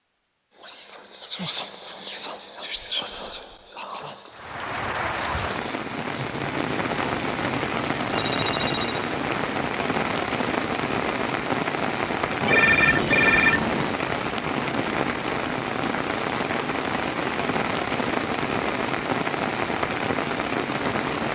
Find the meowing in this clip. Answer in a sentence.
You can't hear the meowing here.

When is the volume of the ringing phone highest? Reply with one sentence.
The volume of the ringing phone peaks at 13 seconds.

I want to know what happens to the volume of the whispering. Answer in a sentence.
The loudness of the whispering goes down.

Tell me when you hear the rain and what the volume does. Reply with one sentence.
The rain can be heard from 4.3 to 21.3 s, at a steady volume.